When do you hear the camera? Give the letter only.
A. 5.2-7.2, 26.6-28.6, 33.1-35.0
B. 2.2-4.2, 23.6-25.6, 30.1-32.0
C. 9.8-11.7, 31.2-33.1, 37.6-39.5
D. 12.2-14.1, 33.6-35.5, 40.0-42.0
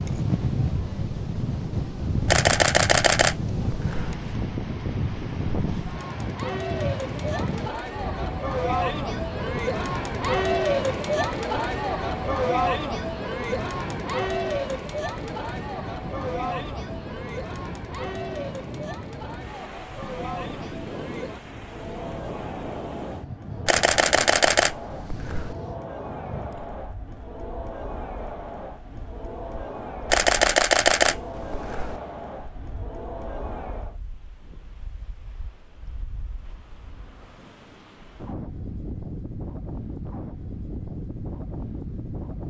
B.